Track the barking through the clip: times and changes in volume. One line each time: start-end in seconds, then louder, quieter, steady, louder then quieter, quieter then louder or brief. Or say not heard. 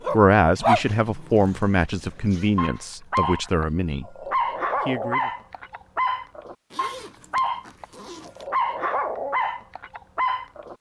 0.0-10.7 steady.